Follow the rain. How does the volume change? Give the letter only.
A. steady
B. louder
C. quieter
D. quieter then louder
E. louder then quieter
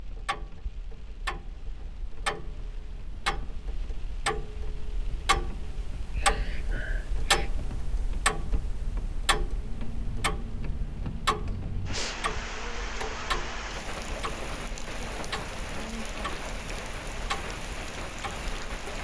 B.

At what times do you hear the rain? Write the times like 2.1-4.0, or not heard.
0.0-18.9.